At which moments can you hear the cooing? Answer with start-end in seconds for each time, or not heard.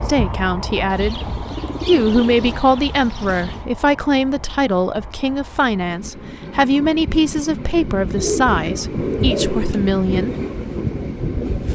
0.8-3.6, 8.2-9.8.